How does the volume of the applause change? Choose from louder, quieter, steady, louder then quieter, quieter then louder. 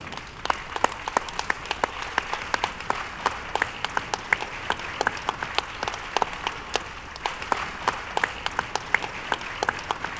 steady.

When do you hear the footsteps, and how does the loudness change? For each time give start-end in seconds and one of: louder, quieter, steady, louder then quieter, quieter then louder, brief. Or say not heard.
not heard.